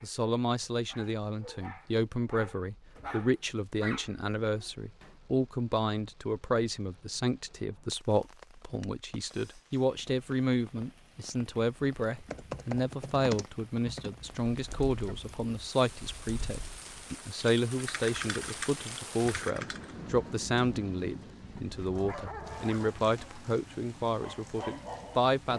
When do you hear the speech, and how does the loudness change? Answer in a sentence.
You can hear the speech from 0.0 to 25.5 s, at a steady volume.